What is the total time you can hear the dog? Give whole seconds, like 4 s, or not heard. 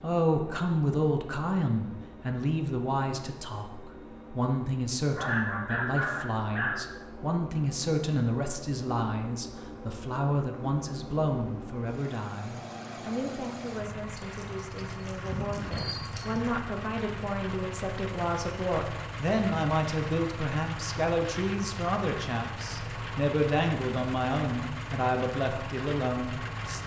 4 s.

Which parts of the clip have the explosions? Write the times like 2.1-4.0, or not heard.
not heard.